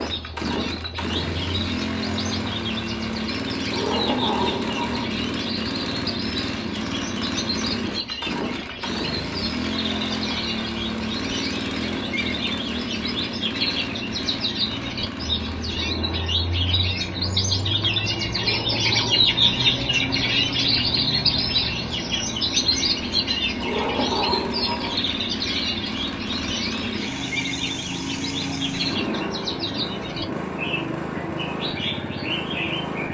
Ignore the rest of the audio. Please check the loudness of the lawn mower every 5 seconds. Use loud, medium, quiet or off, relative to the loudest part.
loud, loud, loud, medium, medium, loud, loud.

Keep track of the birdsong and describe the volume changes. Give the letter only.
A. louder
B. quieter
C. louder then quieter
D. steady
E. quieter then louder
C.